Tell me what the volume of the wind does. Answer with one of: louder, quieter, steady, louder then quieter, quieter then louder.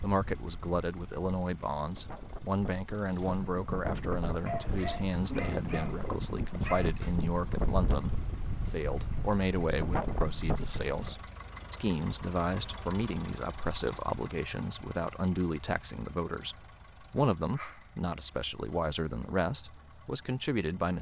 louder.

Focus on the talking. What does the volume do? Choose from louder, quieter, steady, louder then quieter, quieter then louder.
steady.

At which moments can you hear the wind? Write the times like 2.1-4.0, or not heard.
0.1-11.2.